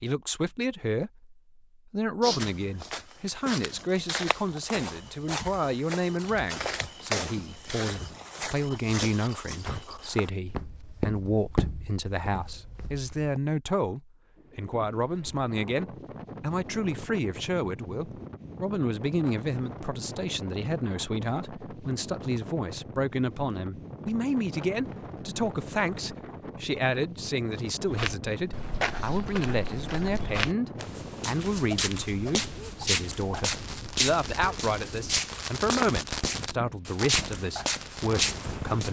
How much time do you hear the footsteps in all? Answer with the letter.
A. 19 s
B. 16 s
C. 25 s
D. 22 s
D.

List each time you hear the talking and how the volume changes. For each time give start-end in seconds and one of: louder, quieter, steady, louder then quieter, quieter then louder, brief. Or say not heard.
0.0-38.8 steady.